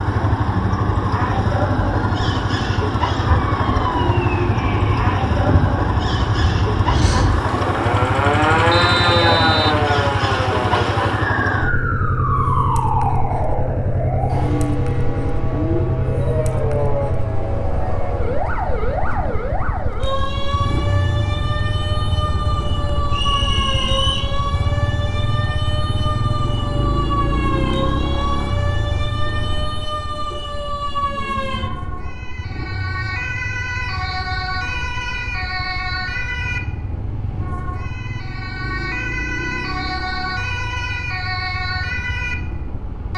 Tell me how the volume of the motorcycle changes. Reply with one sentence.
The loudness of the motorcycle goes down.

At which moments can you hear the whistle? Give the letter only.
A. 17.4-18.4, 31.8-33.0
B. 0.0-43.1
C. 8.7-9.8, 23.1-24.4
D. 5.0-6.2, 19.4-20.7
C.